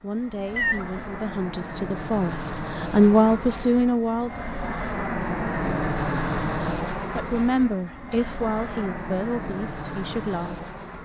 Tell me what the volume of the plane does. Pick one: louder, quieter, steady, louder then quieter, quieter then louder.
louder then quieter.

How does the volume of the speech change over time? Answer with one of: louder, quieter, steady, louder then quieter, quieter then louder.
louder then quieter.